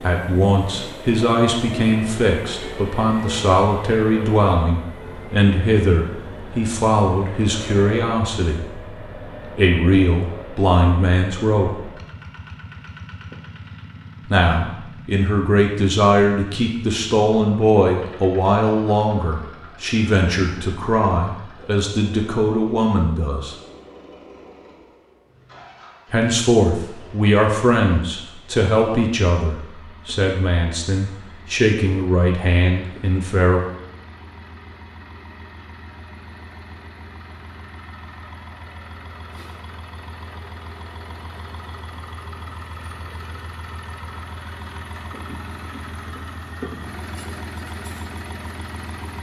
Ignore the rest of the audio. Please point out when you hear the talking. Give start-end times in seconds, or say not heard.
0.0-8.8, 9.6-11.7, 14.2-23.6, 26.1-33.6.